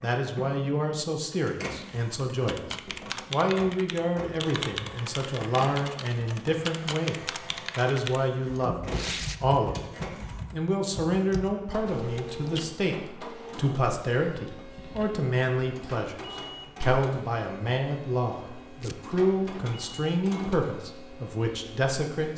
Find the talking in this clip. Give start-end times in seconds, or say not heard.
0.0-2.6, 3.3-16.1, 16.8-22.3.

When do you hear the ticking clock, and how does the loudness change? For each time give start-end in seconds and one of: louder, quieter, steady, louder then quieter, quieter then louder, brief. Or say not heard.
not heard.